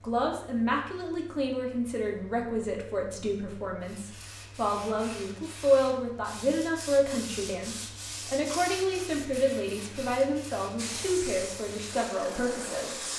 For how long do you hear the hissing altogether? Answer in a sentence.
The hissing can be heard for 2 seconds in total.